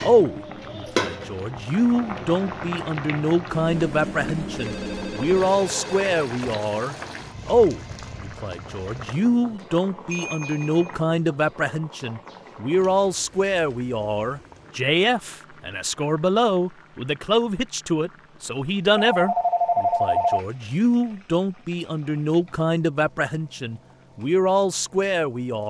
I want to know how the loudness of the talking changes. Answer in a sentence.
The volume of the talking stays about the same.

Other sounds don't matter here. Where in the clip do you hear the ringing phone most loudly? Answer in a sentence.
The loudest moment of the ringing phone is at 20 seconds.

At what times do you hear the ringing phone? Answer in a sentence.
You can hear the ringing phone from 4.5 to 6.6 s, from 10.1 to 10.9 s and from 18.9 to 20.4 s.